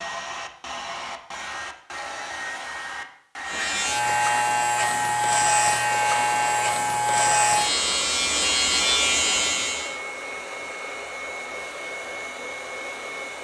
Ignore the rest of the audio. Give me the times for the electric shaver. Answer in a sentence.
The electric shaver can be heard from 3.5 to 9.9 s.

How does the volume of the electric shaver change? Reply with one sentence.
The volume of the electric shaver stays about the same.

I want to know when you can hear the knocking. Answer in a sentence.
You can't hear the knocking here.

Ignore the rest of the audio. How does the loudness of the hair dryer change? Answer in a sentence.
The loudness of the hair dryer stays about the same.